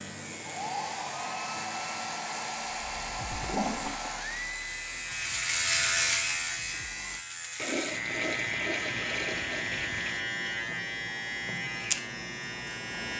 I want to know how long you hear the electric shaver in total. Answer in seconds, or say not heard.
13 s.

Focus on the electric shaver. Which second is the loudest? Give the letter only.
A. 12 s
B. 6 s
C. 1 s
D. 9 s
B.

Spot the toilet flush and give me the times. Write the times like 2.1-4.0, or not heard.
3.3-4.0, 7.5-10.2.